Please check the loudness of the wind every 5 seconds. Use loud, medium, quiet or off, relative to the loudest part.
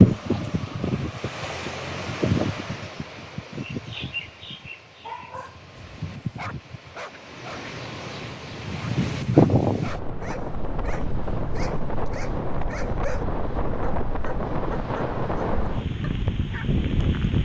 loud, loud, medium, loud.